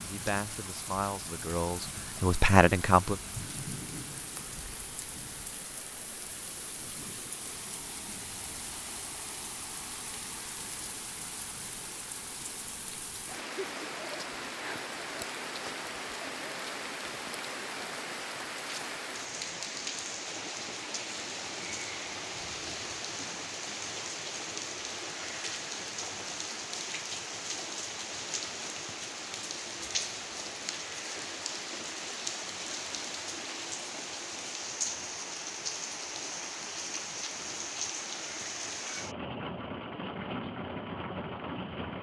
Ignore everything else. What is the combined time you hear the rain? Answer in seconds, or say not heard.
42 s.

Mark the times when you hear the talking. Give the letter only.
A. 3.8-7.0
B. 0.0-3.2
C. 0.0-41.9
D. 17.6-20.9
B.